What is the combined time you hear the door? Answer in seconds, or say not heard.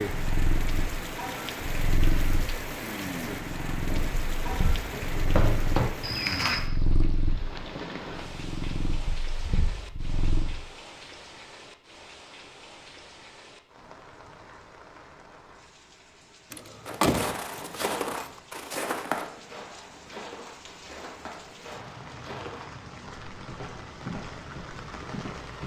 2 s.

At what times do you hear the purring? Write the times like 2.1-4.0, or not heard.
0.1-10.6.